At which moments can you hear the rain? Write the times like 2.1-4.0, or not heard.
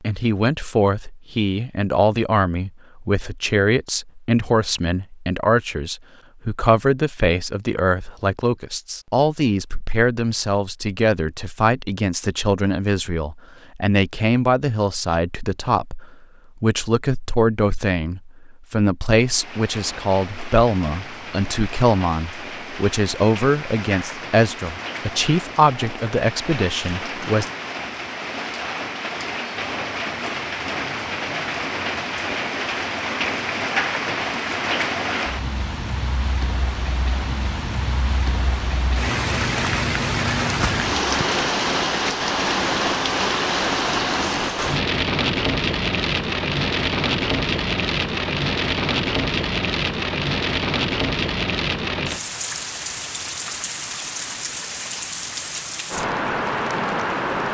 19.1-57.4.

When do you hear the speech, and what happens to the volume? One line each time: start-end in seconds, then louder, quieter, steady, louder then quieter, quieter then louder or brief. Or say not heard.
0.0-27.4 steady.